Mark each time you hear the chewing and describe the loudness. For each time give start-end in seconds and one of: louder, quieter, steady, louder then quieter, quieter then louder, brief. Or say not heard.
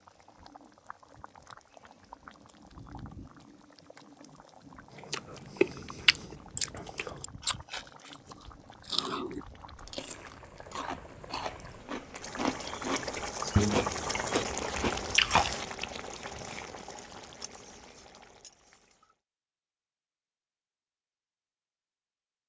5.0-15.6 quieter then louder.